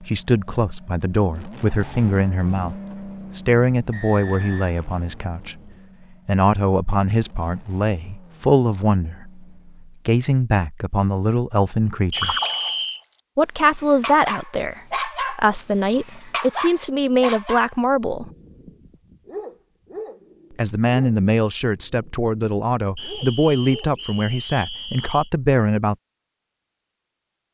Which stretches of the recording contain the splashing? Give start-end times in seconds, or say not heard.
12.1-13.2.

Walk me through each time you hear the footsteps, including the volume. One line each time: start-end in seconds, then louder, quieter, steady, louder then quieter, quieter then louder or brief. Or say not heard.
not heard.